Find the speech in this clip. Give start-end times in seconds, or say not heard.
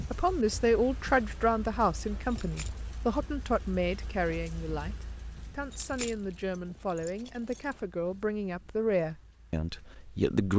0.1-10.5.